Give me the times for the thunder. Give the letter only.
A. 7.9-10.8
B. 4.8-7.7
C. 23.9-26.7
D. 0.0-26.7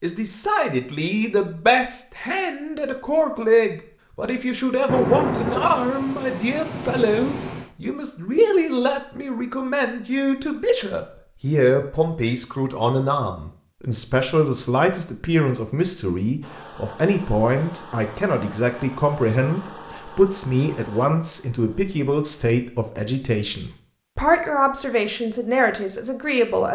B.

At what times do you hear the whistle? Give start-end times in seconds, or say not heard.
not heard.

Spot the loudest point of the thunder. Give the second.
5 s.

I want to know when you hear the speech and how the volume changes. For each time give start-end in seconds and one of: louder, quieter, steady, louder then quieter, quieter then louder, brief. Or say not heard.
0.0-26.7 steady.